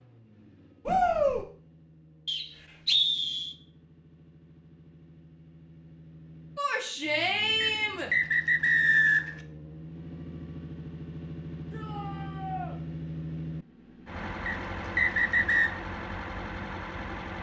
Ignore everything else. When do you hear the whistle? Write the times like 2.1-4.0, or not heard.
2.2-3.5, 7.6-9.4, 14.4-15.7.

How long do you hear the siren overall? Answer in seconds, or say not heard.
not heard.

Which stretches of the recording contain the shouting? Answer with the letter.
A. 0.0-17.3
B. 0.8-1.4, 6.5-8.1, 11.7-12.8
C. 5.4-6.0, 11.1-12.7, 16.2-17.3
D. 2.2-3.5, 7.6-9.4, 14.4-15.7
B.